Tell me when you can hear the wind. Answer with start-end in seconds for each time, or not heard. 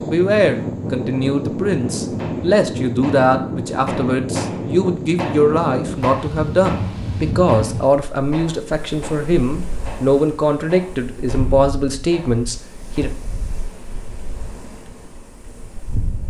0.0-16.2.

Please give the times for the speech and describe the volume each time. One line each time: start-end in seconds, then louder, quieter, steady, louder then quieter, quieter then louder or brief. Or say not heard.
0.0-13.1 steady.